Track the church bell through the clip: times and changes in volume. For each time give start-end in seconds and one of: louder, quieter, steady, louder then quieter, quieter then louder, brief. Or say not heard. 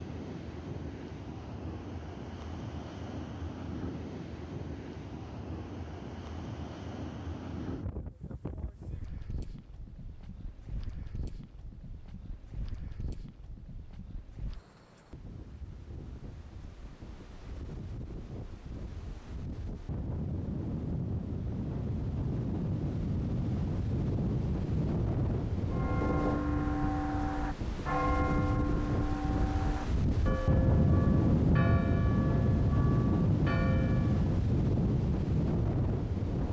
25.7-34.2 quieter.